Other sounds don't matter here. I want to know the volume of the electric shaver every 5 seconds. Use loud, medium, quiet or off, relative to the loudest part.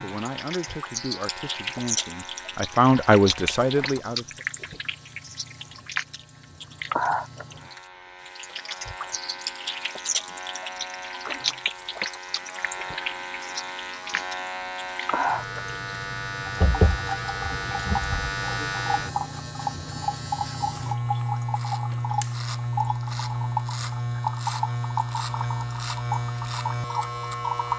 quiet, quiet, medium, loud, loud, loud.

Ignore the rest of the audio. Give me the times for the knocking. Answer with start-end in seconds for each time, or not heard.
16.6-18.4.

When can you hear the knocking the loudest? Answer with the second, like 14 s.
17 s.